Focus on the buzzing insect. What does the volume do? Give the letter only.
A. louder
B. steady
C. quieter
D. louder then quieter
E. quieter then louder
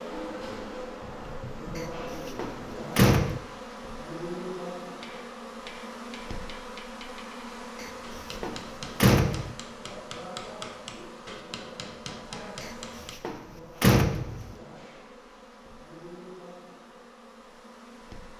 C.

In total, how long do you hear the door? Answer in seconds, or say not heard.
5 s.